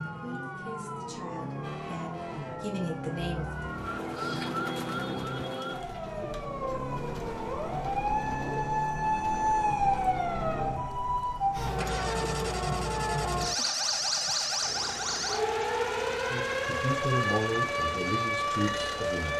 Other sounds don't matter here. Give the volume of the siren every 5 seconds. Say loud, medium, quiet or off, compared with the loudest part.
medium, loud, loud, loud.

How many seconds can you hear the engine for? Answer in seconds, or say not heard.
19 s.